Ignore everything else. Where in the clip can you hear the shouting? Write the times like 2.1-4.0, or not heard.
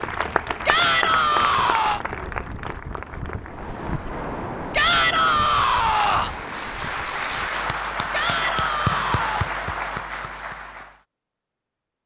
0.7-2.0, 4.7-6.3, 8.1-9.5.